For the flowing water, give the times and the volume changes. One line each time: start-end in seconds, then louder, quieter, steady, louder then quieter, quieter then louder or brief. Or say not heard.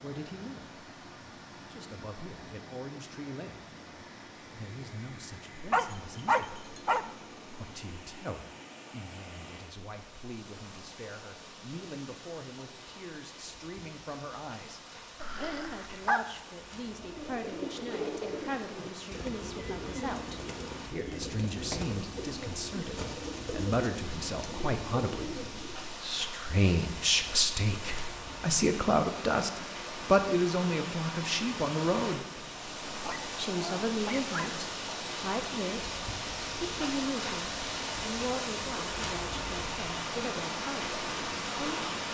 0.0-42.0 louder.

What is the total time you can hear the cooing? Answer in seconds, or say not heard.
9 s.